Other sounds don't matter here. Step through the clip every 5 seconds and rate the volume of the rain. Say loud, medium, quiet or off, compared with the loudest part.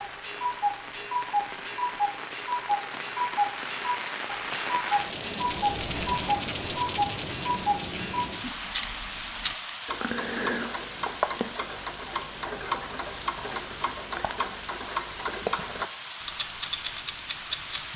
loud, loud, medium, medium.